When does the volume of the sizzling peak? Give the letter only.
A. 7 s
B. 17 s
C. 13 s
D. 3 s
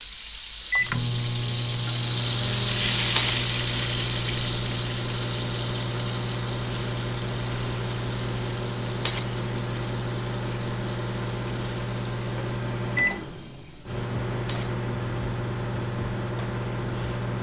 D.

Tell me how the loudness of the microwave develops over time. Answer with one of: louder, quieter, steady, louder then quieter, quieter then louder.
steady.